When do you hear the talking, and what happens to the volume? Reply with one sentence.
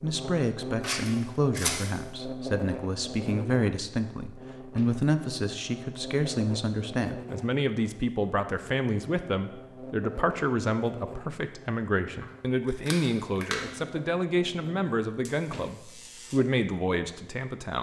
You can hear the talking from 0.0 to 17.7 s, at a steady volume.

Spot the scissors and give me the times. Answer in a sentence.
You can hear the scissors from 0.8 to 1.9 s and from 12.2 to 13.6 s.